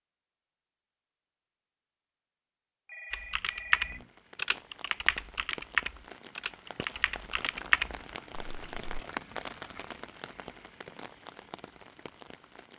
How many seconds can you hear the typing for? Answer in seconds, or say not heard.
6 s.